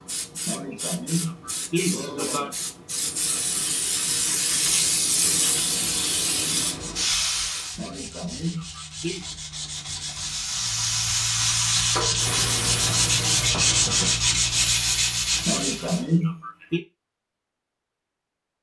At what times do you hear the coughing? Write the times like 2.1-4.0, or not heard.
0.5-2.5, 7.8-9.2, 15.4-16.8.